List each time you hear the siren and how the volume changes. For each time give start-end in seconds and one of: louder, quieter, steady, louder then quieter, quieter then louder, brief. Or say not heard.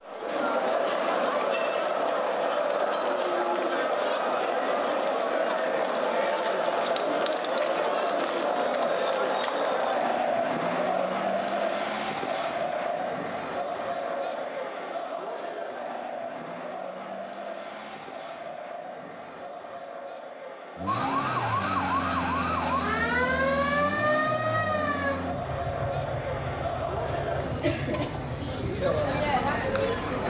20.9-25.2 steady.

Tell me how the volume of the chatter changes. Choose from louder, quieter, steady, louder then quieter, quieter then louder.
quieter then louder.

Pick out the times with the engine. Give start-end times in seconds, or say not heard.
20.8-30.2.